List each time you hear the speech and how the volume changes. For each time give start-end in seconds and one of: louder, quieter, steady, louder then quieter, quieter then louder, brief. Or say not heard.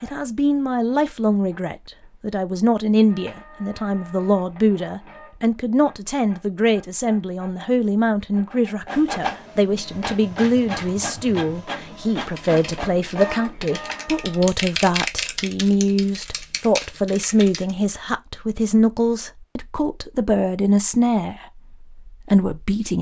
0.0-22.9 steady.